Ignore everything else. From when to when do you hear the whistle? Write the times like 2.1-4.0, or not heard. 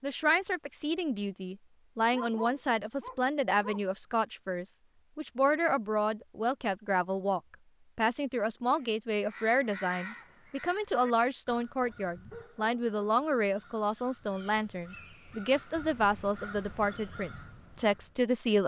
not heard.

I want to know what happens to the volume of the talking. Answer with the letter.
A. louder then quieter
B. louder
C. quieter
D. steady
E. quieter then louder
D.